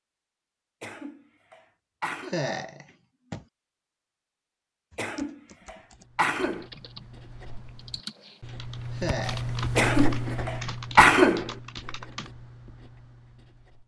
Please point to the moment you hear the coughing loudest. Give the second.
11 s.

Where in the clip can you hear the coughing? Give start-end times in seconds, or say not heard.
0.8-2.4, 5.0-6.7, 9.8-11.5.